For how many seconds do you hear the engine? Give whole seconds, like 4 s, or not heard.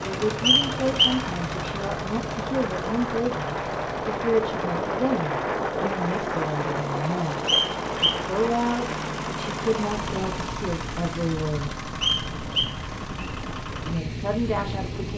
15 s.